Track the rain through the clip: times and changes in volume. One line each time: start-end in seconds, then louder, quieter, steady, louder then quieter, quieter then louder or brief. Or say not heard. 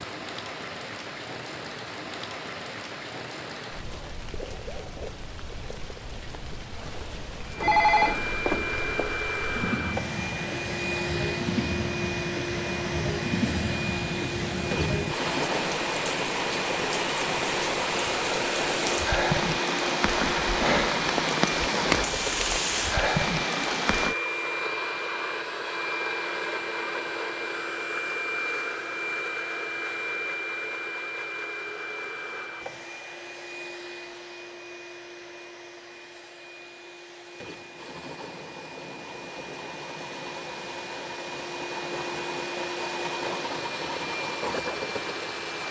0.0-24.1 louder.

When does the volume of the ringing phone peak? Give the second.
8 s.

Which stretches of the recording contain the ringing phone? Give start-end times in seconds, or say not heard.
7.5-9.2.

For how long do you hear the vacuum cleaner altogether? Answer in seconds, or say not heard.
38 s.